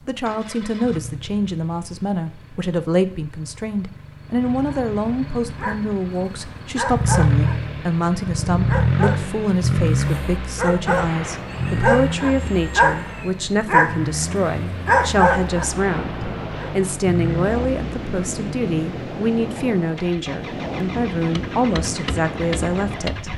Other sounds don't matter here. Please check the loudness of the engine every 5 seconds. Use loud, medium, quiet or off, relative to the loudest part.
quiet, loud, medium, medium, medium.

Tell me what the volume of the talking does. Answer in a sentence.
The volume of the talking stays about the same.